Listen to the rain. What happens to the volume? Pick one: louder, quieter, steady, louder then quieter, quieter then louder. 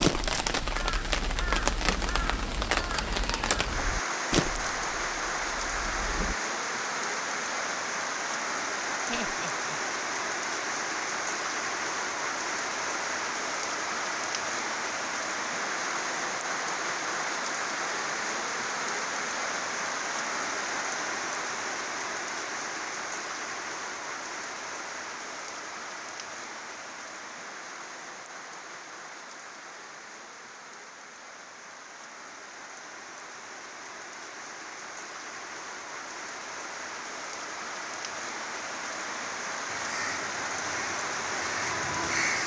quieter then louder.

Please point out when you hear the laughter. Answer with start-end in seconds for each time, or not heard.
9.1-9.8.